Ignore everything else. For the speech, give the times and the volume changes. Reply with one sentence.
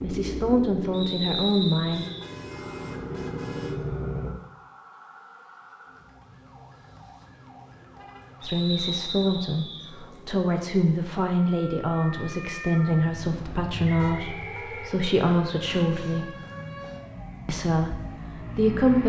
The speech can be heard briefly from 0.0 to 2.0 s; from 8.4 to 16.4 s, at a steady volume; and briefly from 17.4 to 19.0 s.